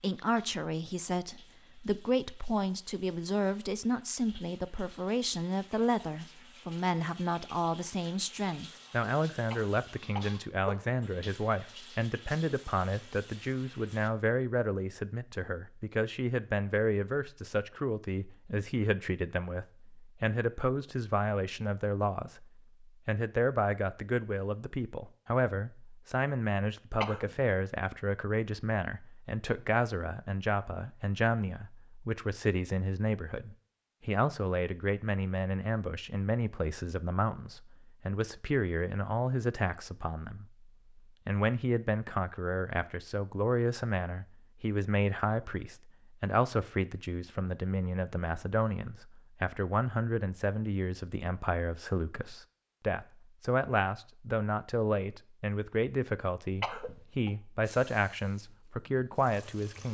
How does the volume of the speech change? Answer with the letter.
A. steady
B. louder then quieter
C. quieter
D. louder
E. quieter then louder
A.